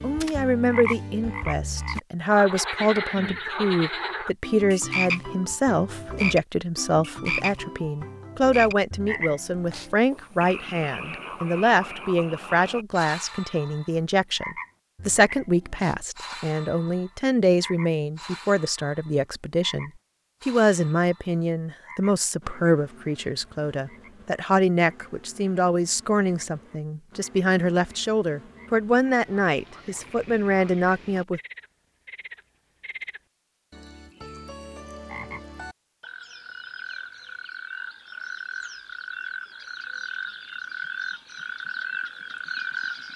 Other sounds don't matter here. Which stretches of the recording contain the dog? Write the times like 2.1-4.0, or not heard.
not heard.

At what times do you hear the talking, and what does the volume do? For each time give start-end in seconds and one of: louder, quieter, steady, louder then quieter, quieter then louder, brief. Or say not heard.
0.0-31.4 steady.